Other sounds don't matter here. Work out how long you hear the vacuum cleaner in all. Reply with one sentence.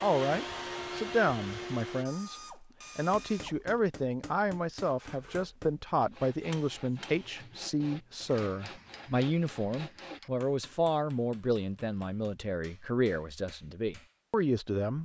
The vacuum cleaner can be heard for 2 seconds in total.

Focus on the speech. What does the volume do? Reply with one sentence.
The volume of the speech stays about the same.